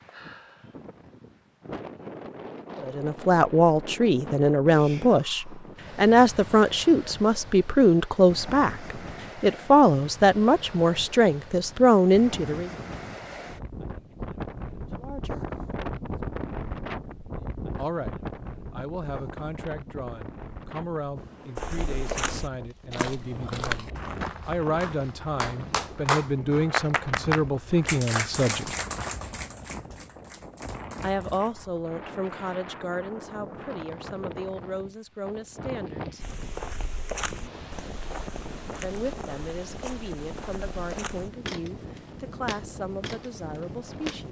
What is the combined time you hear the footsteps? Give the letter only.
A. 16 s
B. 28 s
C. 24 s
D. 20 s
A.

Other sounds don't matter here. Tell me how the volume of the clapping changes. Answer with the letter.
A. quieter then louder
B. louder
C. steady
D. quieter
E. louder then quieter
D.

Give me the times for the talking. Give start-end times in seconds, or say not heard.
2.8-12.7, 14.9-15.5, 17.8-28.7, 31.0-36.4, 38.8-44.2.